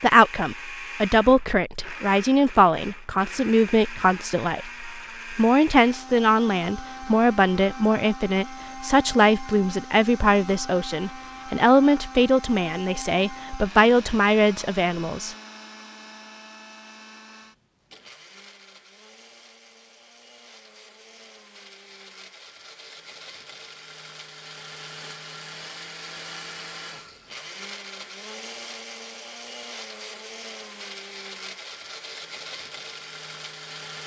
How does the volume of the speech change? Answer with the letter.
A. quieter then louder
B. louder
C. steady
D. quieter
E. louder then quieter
C.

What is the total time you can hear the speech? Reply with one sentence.
You can hear the speech for 15 seconds altogether.